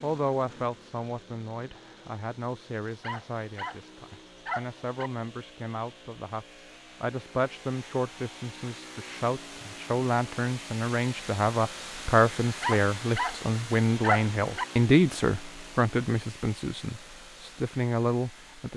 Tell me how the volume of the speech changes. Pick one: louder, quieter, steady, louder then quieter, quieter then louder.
louder.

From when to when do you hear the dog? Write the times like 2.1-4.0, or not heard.
2.9-5.1, 12.4-14.7.